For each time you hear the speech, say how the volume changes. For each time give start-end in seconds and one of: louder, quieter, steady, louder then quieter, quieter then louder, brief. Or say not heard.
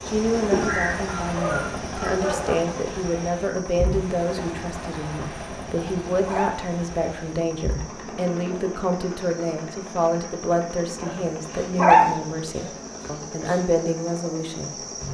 0.1-14.8 steady.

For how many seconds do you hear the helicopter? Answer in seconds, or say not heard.
15 s.